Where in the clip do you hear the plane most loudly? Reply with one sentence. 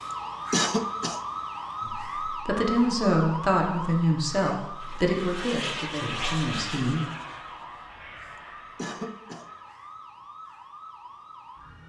The loudest moment of the plane is at 6 seconds.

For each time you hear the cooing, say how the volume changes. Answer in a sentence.
The cooing can't be heard in this clip.